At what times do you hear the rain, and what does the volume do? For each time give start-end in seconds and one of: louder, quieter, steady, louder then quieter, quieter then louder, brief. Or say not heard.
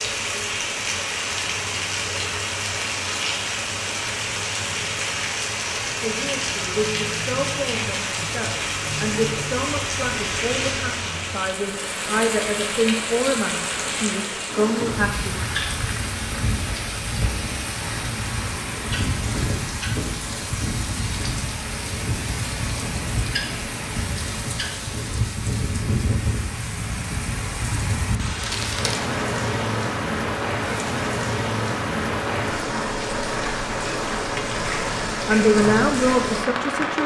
0.0-37.0 steady.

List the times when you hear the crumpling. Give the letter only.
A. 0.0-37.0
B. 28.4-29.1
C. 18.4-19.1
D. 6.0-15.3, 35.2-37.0
B.